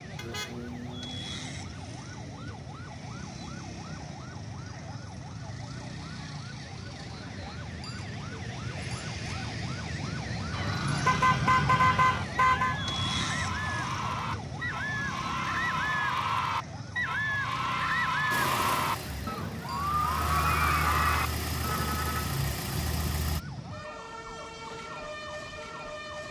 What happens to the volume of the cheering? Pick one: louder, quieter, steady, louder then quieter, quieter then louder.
louder.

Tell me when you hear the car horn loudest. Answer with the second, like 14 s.
12 s.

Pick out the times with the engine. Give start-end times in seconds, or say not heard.
18.3-23.4.